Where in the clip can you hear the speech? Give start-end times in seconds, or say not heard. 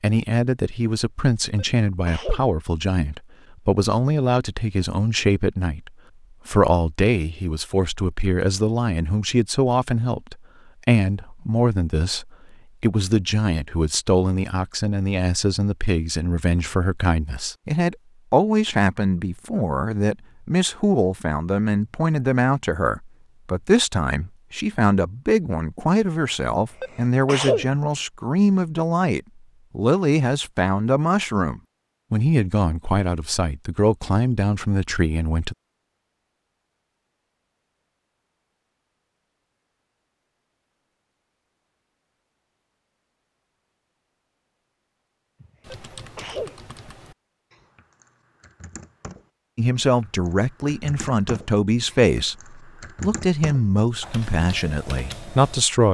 0.0-35.5, 49.5-55.8.